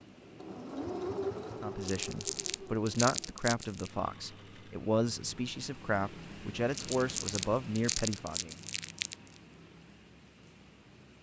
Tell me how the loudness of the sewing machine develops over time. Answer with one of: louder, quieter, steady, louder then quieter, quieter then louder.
quieter.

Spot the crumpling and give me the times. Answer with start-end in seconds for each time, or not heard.
1.8-3.9, 6.7-9.2.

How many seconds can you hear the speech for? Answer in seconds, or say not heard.
7 s.